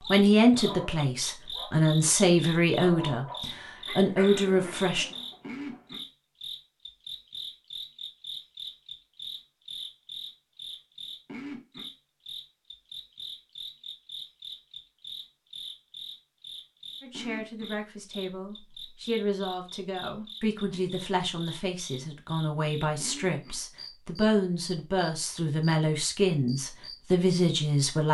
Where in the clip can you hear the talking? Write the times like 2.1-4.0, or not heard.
0.1-5.0, 17.0-28.0.